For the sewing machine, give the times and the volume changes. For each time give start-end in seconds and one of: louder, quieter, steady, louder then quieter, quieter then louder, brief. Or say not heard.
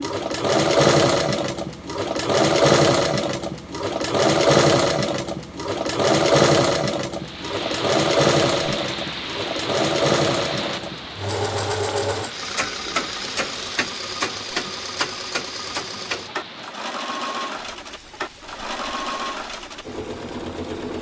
0.0-20.9 quieter.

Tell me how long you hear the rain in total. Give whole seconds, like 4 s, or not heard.
14 s.